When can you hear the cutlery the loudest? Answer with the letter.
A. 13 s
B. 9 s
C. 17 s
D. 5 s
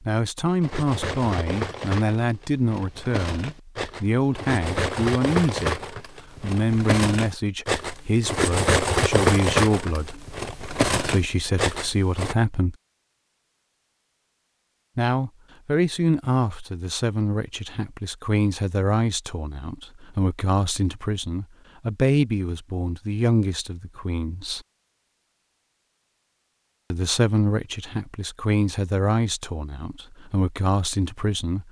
B.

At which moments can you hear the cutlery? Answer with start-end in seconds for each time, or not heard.
0.6-12.3.